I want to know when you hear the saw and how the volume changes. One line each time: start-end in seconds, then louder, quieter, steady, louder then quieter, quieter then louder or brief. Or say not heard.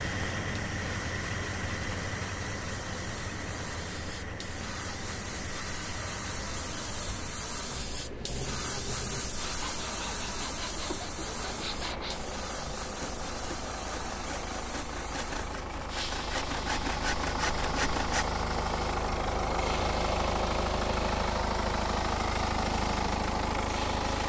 9.3-18.3 louder.